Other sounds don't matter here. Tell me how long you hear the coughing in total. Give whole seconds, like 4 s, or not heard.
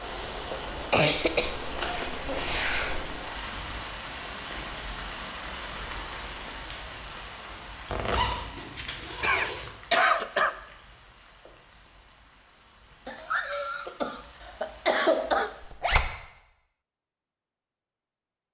6 s.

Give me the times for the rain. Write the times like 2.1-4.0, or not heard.
0.0-15.8.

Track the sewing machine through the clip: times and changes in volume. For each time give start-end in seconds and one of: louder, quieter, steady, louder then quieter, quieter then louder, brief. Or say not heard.
not heard.